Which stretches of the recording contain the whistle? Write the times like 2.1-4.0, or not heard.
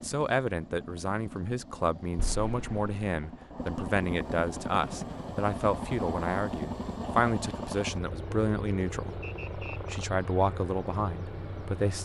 9.2-9.8.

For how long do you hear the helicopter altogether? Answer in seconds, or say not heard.
12 s.